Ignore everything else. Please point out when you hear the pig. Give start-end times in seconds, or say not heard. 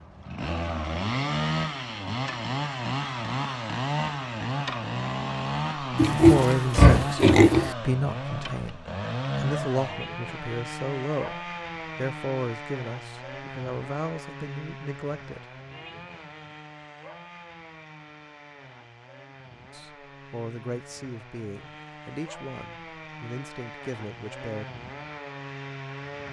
6.0-7.7.